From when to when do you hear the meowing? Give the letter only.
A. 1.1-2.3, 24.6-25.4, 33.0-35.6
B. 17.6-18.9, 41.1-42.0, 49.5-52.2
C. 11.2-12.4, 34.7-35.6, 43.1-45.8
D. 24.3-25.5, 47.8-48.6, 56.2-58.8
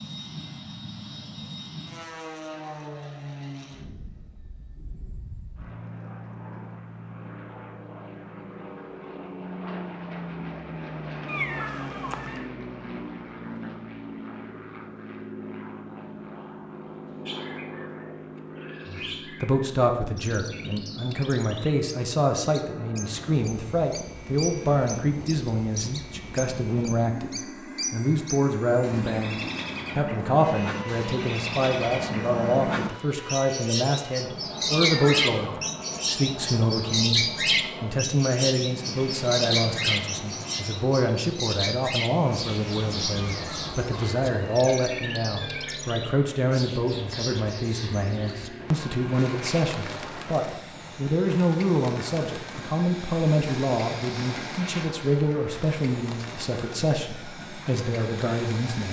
C.